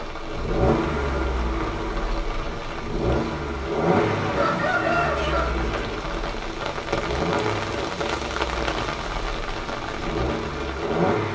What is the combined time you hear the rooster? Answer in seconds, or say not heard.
2 s.